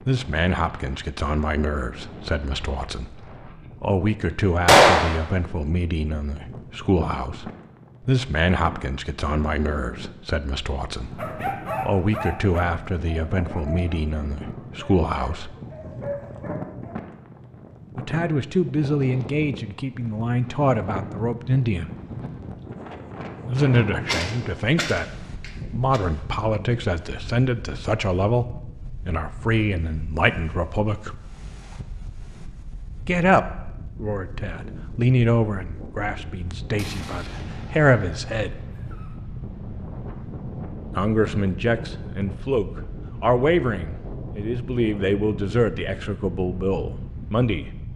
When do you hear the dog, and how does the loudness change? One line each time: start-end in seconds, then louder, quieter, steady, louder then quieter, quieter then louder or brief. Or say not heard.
11.2-16.9 quieter then louder.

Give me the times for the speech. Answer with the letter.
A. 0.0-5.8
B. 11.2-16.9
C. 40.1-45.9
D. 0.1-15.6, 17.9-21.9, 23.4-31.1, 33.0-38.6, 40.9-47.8
D.